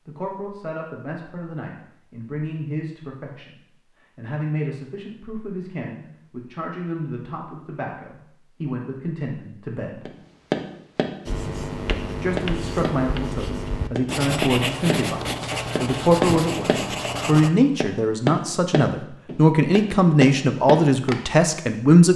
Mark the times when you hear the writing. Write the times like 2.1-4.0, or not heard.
11.2-17.5.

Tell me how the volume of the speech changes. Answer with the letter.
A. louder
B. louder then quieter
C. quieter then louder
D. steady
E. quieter
A.